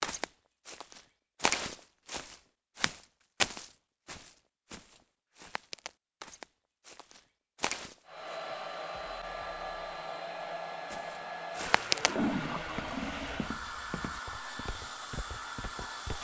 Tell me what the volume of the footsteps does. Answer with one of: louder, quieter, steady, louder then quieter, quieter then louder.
quieter.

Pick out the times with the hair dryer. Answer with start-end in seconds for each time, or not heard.
8.1-16.2.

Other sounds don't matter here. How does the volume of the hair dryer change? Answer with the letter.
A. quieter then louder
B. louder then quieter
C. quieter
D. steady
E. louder
D.